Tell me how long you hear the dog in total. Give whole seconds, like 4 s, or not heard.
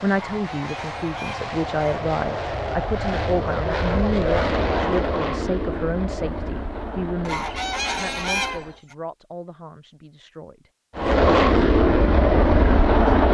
not heard.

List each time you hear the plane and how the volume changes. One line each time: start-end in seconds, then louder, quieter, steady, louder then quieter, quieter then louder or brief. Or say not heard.
0.0-8.8 louder then quieter
10.9-13.2 brief.